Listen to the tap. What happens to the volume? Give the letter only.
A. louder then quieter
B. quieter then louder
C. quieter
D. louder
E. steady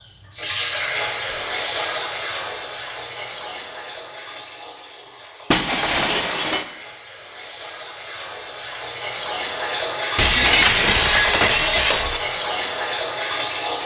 B.